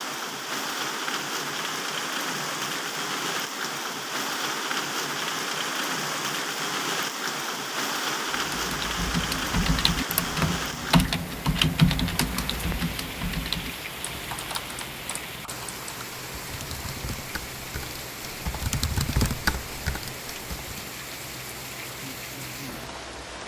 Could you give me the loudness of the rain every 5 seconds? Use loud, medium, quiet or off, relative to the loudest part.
loud, loud, medium, medium, medium.